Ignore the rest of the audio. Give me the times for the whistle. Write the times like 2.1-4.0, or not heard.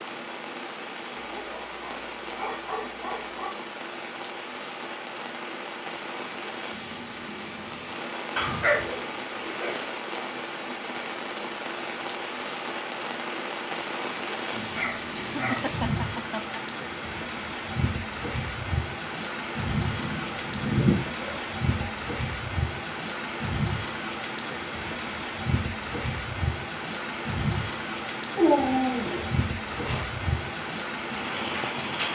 not heard.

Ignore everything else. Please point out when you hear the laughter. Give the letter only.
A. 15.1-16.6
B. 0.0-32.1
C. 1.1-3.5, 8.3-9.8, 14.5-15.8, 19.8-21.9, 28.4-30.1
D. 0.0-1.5
A.